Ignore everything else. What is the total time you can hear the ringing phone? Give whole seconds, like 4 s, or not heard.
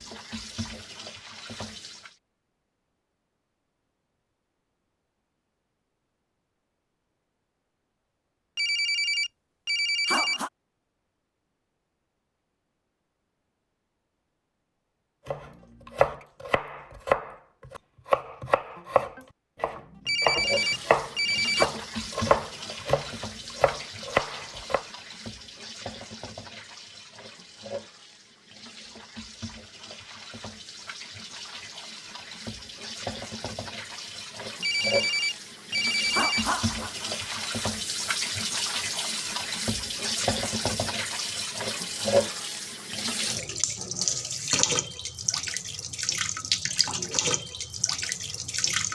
6 s.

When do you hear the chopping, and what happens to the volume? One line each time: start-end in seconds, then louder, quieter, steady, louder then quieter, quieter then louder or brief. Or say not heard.
15.2-24.9 steady.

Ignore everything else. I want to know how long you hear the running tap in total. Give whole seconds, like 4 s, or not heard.
31 s.